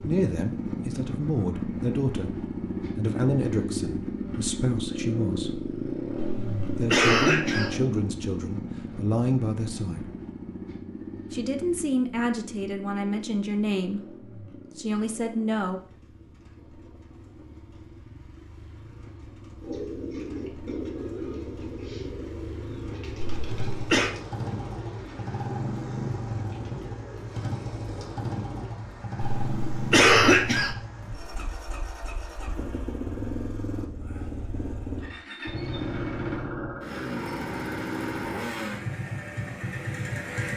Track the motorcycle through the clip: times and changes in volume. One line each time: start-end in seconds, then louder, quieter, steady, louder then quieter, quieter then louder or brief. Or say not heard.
0.0-40.5 quieter then louder.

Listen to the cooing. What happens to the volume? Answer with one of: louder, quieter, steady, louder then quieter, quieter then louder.
quieter.